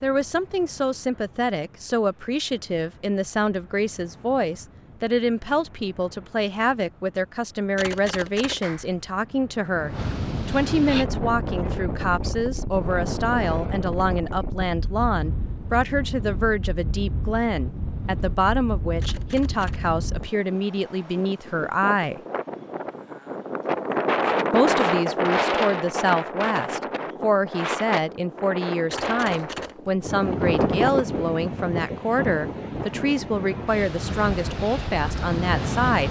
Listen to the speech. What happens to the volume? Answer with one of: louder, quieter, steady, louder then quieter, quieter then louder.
steady.